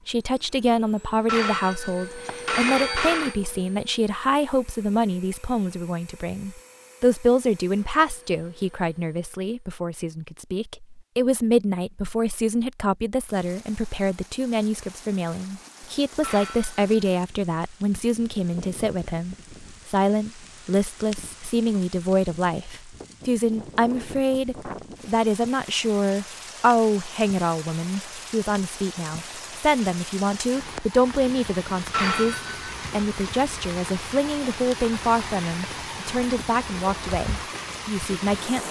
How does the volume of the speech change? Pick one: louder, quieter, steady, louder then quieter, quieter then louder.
steady.